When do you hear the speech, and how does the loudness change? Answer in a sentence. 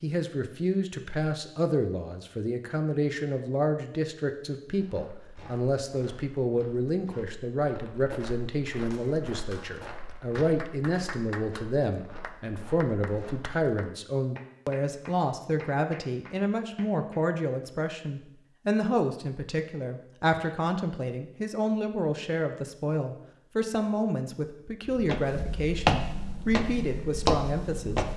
You can hear the speech from 0.0 to 28.1 s, at a steady volume.